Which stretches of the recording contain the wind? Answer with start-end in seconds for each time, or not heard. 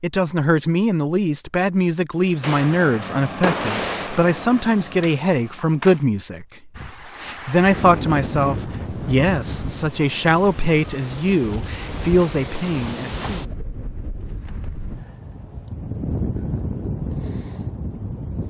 6.8-18.4.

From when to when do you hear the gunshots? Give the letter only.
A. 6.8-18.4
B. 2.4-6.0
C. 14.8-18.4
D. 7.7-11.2
B.